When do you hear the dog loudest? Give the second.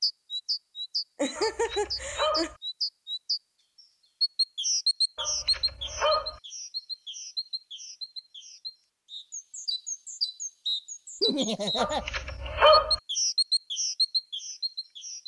13 s.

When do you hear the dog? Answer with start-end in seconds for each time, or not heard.
1.4-2.5, 5.2-6.4, 11.8-13.0.